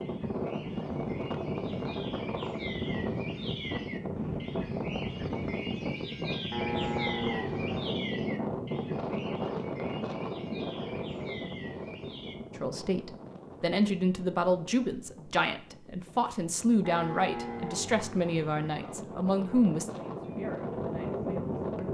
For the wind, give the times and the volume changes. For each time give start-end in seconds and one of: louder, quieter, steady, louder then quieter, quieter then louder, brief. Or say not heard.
0.0-21.8 quieter then louder.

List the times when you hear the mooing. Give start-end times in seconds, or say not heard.
6.5-7.9, 16.8-18.9.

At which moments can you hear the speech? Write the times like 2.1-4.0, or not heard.
12.6-21.8.